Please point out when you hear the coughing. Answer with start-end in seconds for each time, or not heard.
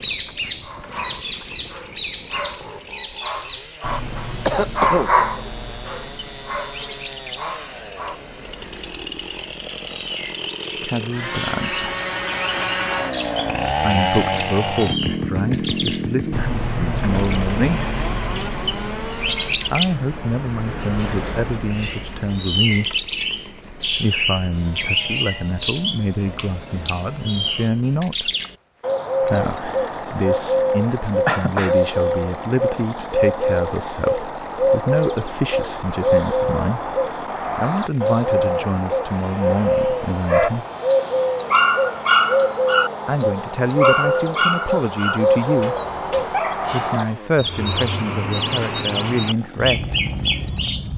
4.5-5.5, 31.2-31.8.